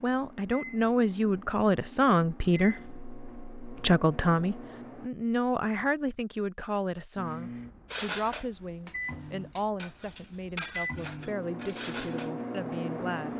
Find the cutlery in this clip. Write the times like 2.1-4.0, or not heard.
7.9-12.8.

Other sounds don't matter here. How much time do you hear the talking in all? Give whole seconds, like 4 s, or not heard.
13 s.